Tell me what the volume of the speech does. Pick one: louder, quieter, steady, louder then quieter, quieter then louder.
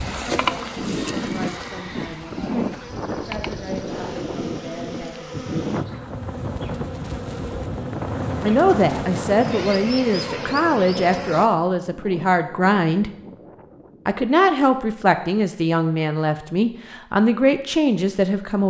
louder.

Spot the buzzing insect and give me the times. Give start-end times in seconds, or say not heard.
0.0-11.5.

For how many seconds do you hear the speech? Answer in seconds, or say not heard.
15 s.